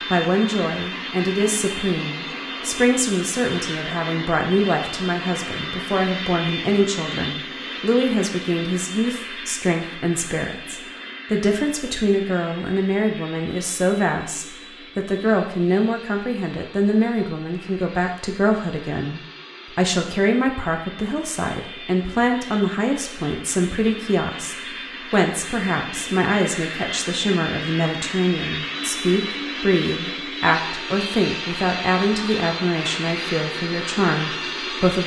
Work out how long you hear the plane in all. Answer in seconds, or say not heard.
35 s.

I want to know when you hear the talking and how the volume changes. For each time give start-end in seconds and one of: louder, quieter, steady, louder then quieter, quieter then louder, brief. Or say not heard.
0.1-35.0 steady.